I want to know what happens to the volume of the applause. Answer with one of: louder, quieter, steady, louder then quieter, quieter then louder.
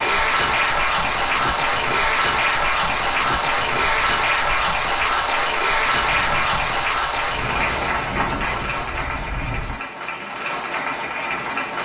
quieter.